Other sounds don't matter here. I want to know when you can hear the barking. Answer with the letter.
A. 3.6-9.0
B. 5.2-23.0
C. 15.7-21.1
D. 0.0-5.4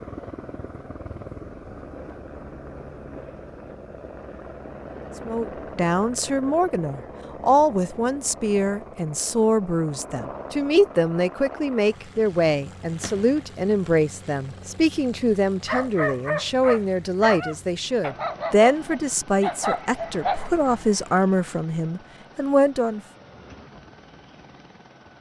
C.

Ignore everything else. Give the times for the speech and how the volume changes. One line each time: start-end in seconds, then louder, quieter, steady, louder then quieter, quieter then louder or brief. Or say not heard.
5.2-23.0 steady.